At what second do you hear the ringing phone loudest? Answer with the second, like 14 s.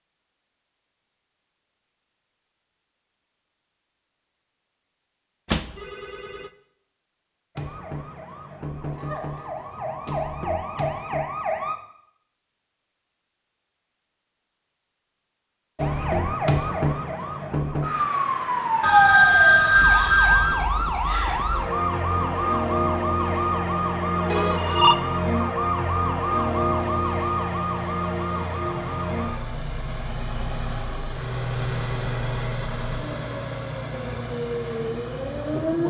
19 s.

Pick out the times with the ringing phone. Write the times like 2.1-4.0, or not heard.
5.5-6.5, 18.8-20.7, 24.3-24.9.